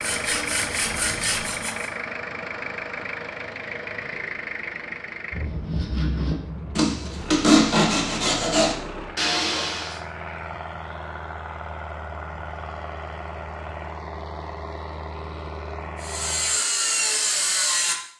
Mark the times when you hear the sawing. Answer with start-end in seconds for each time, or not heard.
0.0-1.9, 5.4-10.0, 16.0-17.9.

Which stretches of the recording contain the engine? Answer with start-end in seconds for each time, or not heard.
0.0-16.6.